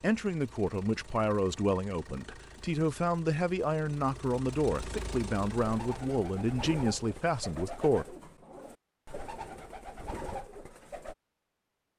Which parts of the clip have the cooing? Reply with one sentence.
The cooing can be heard from 5.6 to 11.2 s.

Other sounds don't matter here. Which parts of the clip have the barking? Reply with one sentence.
You can't hear the barking here.